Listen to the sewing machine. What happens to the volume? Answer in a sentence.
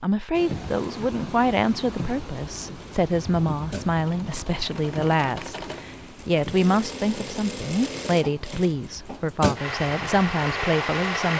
The loudness of the sewing machine goes up.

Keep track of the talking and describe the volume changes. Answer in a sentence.
The loudness of the talking stays about the same.